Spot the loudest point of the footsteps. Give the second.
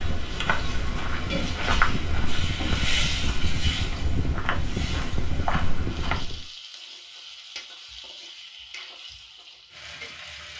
2 s.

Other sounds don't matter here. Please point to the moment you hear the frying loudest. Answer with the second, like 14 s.
3 s.